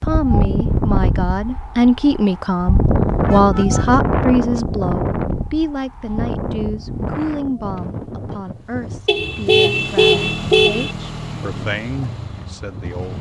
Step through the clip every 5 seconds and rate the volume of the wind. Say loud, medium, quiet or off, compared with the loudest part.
loud, medium, quiet.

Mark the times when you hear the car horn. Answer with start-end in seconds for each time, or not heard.
3.1-4.0, 9.1-10.9.